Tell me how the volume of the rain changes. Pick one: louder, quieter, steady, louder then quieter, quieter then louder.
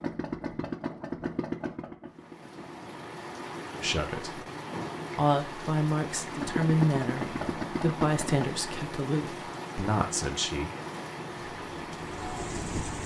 steady.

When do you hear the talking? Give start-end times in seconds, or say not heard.
3.8-4.4, 5.2-10.7.